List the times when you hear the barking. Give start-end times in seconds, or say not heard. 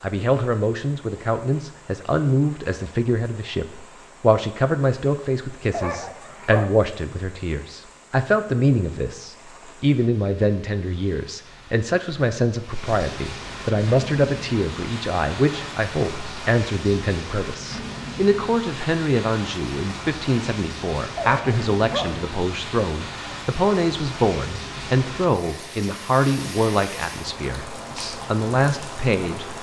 5.7-6.7, 21.1-22.1.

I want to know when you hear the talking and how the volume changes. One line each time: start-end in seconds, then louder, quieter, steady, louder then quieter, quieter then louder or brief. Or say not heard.
0.0-29.4 steady.